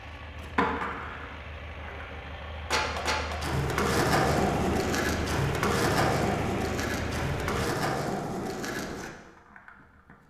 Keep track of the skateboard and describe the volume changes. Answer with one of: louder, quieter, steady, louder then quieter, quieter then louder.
louder then quieter.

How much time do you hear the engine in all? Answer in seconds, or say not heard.
8 s.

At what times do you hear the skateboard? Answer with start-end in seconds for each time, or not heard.
0.2-10.2.